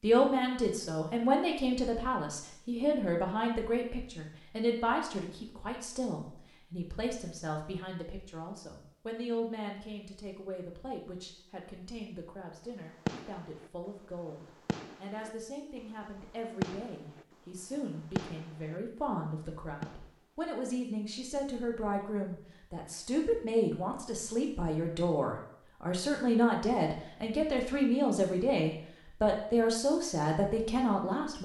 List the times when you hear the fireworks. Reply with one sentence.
The fireworks can be heard from 13.1 to 13.7 s, from 14.3 to 15.3 s, from 16.2 to 18.8 s and from 19.4 to 20.1 s.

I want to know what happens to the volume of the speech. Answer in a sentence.
The volume of the speech goes down, then up.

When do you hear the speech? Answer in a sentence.
The speech can be heard from 0.0 to 31.4 s.